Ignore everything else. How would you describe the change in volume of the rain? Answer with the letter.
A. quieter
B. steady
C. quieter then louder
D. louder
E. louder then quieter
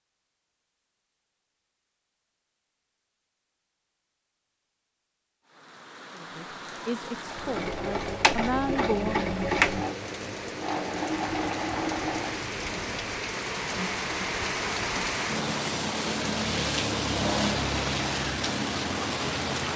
D.